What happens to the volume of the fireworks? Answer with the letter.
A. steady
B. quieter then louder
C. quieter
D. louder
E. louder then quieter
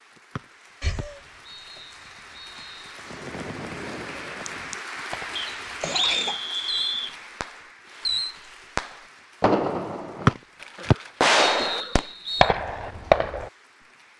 D.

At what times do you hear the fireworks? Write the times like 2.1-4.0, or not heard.
3.0-13.5.